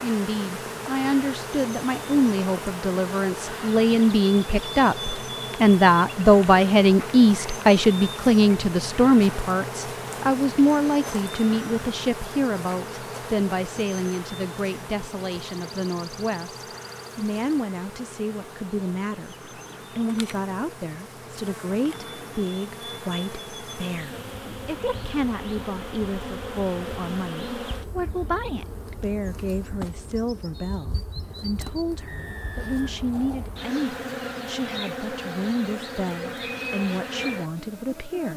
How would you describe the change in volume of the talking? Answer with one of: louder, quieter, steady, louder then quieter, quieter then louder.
quieter.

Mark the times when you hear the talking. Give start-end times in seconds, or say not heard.
0.0-38.3.